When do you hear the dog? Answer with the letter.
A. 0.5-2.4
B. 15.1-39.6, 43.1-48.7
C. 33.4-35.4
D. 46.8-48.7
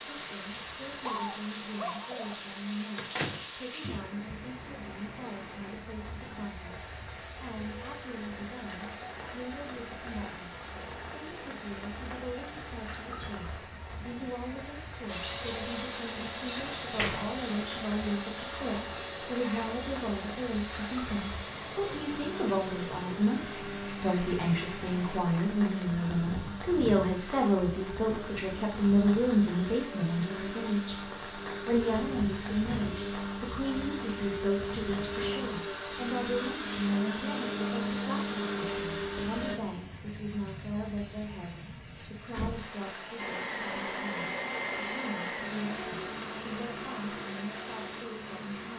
A.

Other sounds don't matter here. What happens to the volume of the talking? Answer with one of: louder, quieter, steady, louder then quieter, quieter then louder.
louder then quieter.